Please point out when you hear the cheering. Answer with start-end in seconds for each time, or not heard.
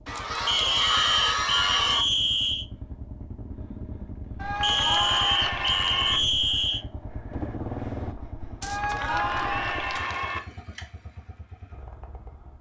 0.1-2.0, 4.3-6.2, 8.6-10.4.